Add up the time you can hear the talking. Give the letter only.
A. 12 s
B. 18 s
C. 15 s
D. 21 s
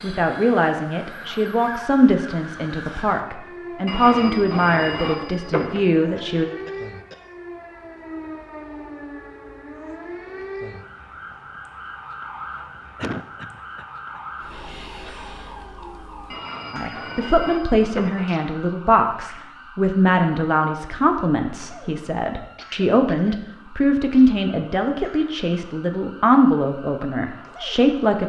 B.